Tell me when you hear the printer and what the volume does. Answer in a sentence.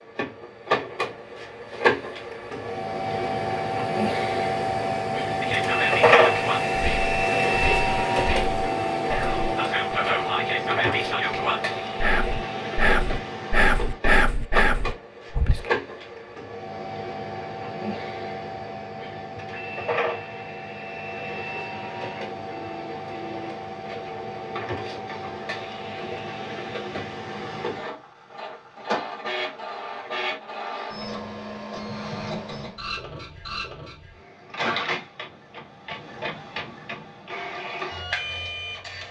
The printer can be heard from 0.0 to 39.0 s, getting quieter.